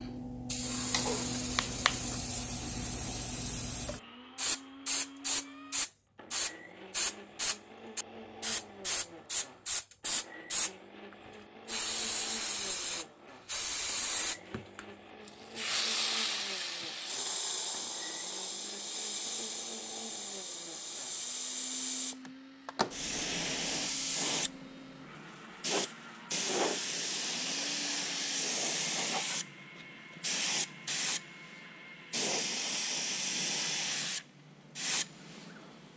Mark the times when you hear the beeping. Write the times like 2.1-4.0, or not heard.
0.9-2.2.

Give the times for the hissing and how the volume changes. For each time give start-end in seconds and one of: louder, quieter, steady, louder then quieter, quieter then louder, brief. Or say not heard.
0.0-35.9 steady.